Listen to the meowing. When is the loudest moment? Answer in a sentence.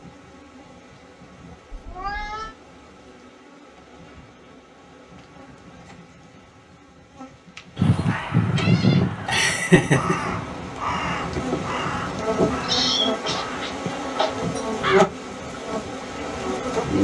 The volume of the meowing peaks at 13 seconds.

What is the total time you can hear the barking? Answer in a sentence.
You can't hear the barking here.